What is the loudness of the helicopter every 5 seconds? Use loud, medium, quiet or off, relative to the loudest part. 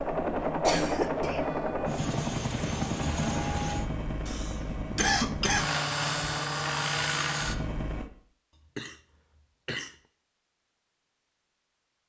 loud, loud, off.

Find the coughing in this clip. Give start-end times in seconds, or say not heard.
0.4-1.4, 4.2-5.7, 8.6-10.0.